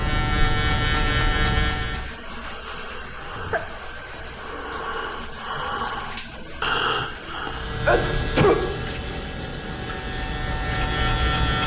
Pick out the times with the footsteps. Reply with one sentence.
The footsteps can't be heard in this clip.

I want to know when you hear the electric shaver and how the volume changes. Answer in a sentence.
You can hear the electric shaver briefly from 0.0 to 2.1 s; and from 7.5 to 11.6 s, getting quieter then louder.